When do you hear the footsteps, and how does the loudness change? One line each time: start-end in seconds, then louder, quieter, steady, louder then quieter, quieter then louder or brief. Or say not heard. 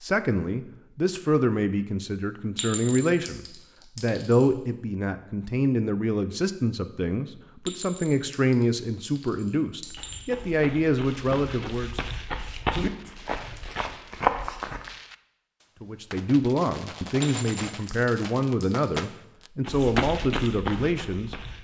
9.8-14.9 louder
19.6-21.6 brief.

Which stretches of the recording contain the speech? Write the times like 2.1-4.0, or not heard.
0.0-12.0, 15.8-21.4.